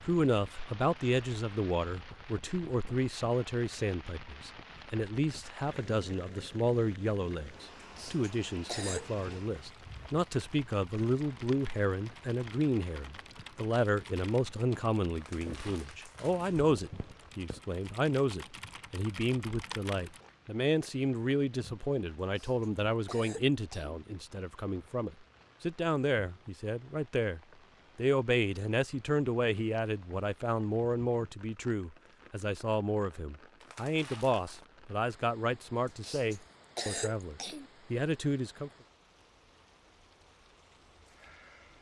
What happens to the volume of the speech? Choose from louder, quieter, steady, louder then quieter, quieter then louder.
steady.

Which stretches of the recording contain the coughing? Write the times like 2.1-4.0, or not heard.
7.8-9.1, 22.2-24.0, 35.9-37.7.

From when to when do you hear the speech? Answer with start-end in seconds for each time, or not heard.
0.1-38.7.